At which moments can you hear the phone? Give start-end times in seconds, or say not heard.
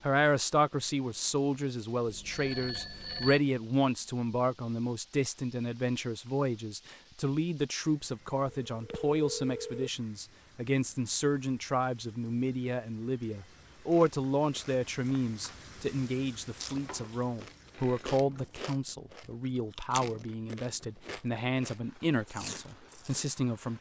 2.0-3.4, 8.7-9.9, 16.7-18.1.